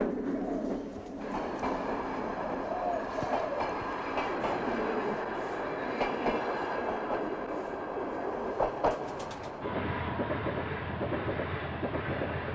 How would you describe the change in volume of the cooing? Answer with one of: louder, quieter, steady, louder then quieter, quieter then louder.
louder then quieter.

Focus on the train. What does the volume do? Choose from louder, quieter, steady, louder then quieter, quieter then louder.
steady.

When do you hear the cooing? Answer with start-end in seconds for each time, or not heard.
0.2-9.7.